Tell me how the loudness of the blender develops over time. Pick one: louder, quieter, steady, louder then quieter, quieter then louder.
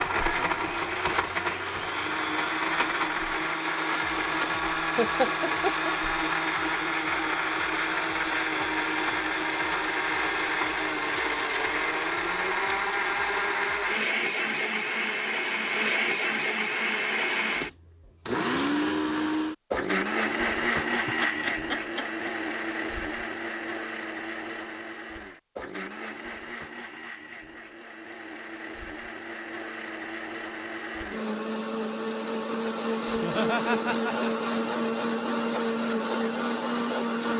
quieter then louder.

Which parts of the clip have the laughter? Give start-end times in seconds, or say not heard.
5.0-5.9, 21.1-22.3, 33.0-34.5.